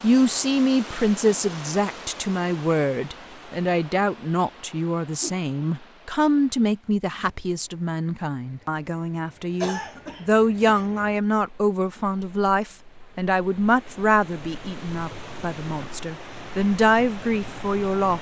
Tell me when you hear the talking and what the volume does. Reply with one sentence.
The talking can be heard from 0.0 to 18.1 s, at a steady volume.